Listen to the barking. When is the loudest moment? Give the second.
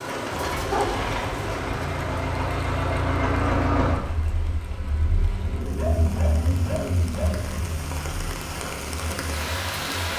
1 s.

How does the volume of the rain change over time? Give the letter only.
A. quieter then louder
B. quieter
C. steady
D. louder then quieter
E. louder
A.